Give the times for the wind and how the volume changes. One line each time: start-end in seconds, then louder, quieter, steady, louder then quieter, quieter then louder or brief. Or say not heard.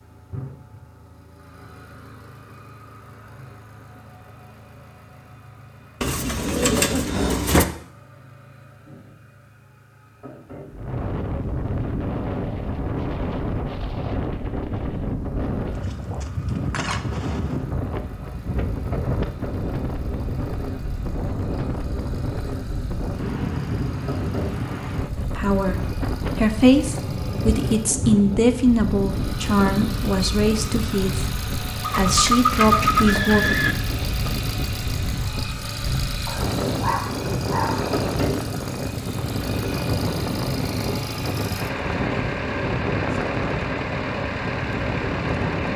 10.7-45.7 steady.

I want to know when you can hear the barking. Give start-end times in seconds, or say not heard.
36.2-38.0.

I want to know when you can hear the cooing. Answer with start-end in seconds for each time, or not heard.
6.0-7.7, 31.8-33.8.